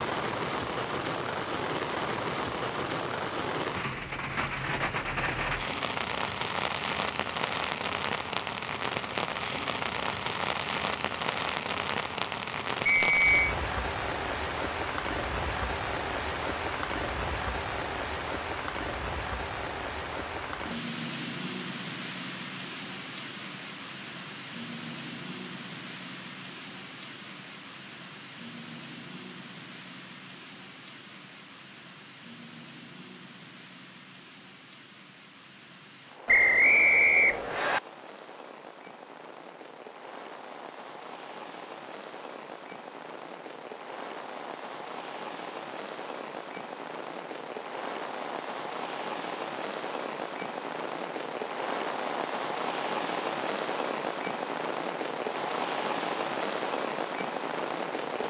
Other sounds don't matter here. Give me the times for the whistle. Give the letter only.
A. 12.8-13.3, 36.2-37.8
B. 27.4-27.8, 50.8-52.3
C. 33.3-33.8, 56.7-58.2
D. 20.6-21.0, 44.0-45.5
A.